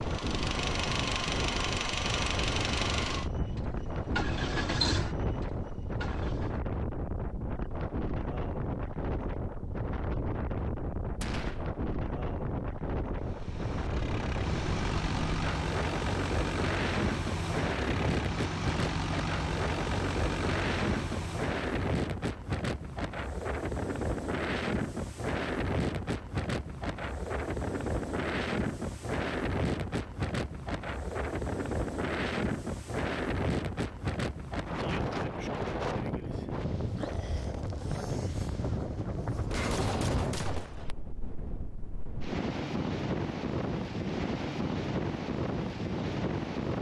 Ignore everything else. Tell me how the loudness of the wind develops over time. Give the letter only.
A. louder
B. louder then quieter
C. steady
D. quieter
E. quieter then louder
C.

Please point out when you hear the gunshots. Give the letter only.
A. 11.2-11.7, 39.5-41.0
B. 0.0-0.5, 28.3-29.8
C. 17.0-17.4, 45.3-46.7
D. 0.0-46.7
A.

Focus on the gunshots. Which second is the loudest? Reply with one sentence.
The loudest moment of the gunshots is at 40 seconds.